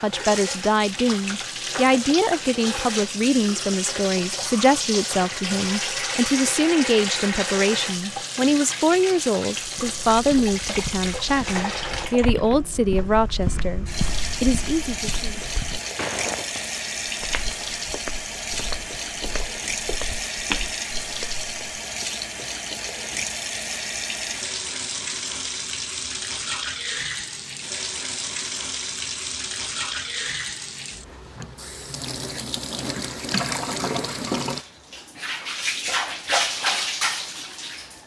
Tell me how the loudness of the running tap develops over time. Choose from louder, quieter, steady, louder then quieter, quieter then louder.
steady.